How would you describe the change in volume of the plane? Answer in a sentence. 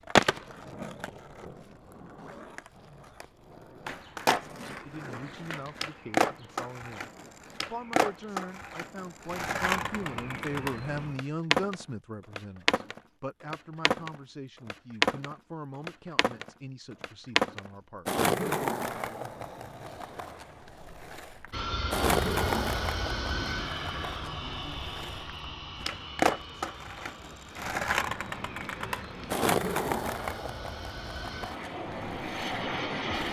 The loudness of the plane goes down, then up.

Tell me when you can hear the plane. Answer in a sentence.
You can hear the plane from 21.5 to 33.2 s.